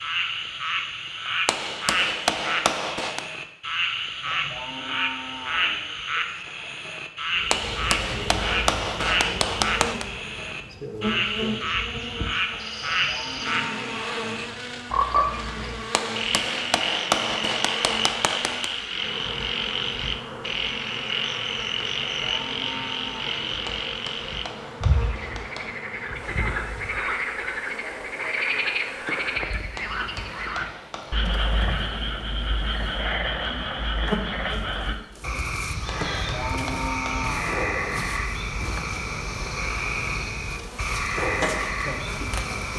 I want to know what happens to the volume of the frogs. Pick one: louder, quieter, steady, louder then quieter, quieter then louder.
steady.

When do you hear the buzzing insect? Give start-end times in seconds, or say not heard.
7.3-42.7.